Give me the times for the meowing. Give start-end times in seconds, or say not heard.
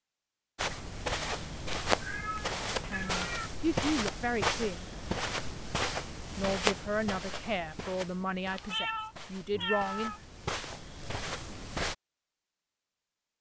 2.0-3.5, 8.5-10.2.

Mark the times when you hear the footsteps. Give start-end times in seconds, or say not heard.
0.6-11.9.